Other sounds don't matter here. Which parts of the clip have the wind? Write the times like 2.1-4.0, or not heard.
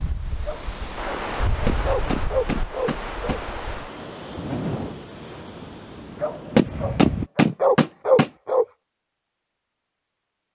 0.0-7.3.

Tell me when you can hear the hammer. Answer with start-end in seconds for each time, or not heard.
1.6-3.4, 6.5-8.3.